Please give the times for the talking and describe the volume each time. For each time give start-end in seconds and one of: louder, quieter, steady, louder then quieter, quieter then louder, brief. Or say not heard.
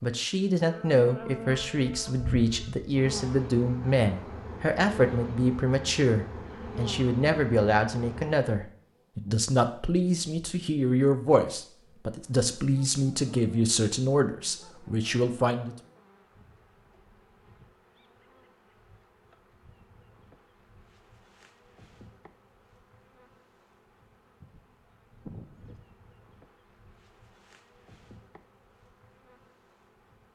0.0-15.8 steady.